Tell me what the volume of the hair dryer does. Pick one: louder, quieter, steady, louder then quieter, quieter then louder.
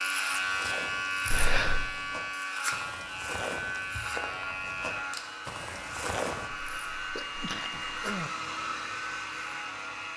louder.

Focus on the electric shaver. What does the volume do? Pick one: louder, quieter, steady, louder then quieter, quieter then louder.
quieter.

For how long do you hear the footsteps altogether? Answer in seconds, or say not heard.
6 s.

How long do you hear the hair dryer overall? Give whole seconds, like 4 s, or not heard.
5 s.